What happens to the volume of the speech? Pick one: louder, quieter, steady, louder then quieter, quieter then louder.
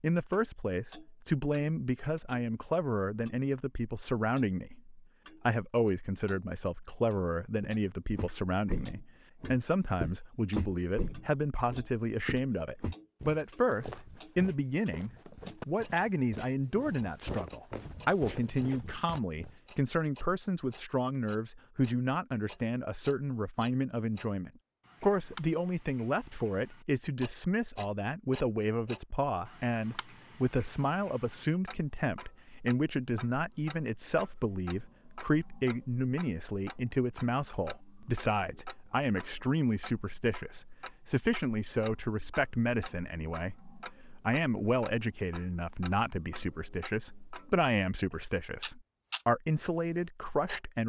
steady.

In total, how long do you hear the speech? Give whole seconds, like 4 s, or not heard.
51 s.